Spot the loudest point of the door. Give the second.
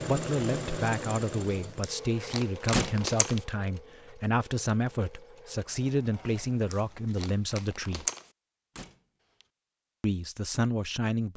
3 s.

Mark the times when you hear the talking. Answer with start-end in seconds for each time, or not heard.
0.1-8.1, 10.0-11.3.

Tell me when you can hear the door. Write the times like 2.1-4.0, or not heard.
2.7-3.4, 8.8-9.4.